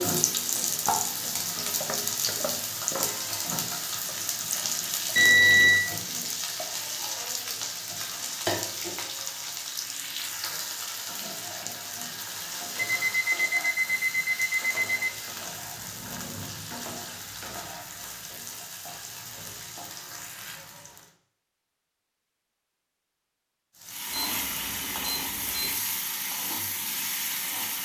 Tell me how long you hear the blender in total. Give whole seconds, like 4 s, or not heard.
not heard.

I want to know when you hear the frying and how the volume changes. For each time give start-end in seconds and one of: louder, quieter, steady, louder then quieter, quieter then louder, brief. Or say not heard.
0.0-21.1 quieter
23.8-27.8 steady.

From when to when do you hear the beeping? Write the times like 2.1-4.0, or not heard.
5.2-5.8, 13.0-15.2, 24.1-25.7.